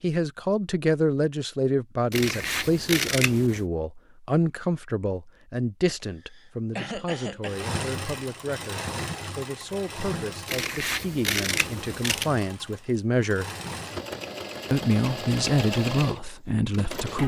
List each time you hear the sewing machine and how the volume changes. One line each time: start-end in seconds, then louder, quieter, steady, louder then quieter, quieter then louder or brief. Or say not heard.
7.5-17.2 quieter then louder.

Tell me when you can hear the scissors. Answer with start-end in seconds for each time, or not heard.
2.1-3.6, 10.4-12.3.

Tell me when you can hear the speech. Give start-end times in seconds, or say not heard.
0.0-13.4, 14.7-17.2.